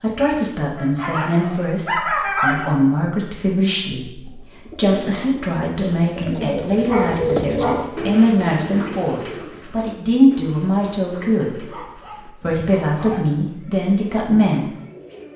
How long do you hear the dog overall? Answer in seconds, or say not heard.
5 s.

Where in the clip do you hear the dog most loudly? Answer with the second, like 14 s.
2 s.